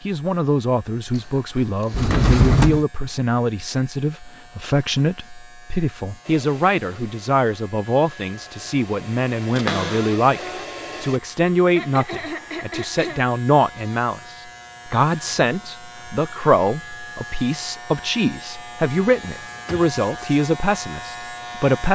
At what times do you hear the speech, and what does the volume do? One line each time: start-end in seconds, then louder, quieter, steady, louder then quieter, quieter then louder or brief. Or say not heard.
0.0-21.8 steady.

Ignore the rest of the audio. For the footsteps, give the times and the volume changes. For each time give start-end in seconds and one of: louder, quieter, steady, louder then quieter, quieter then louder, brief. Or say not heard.
not heard.